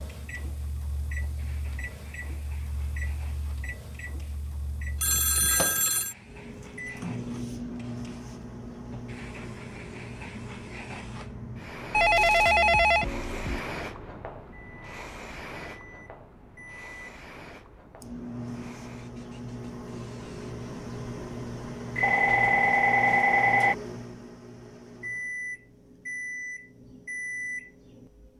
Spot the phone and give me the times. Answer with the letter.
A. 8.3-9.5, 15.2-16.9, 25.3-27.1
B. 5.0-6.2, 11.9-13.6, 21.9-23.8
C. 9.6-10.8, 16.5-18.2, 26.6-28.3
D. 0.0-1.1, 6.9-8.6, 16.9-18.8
B.